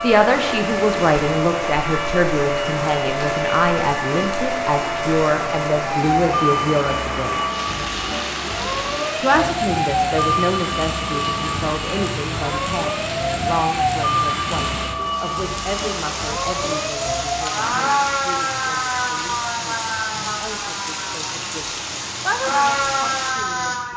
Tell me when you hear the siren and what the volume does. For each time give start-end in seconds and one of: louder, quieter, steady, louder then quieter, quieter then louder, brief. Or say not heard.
0.0-23.9 steady.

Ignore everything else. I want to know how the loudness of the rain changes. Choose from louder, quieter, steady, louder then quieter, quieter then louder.
steady.